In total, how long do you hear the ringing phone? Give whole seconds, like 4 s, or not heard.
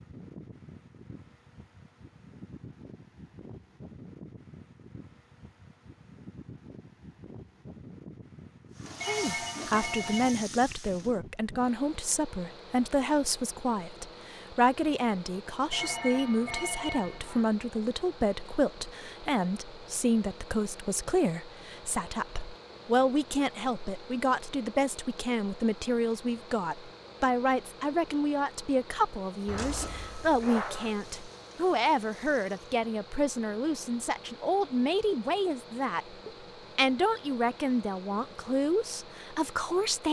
5 s.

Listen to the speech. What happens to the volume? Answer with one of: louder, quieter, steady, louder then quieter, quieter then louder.
steady.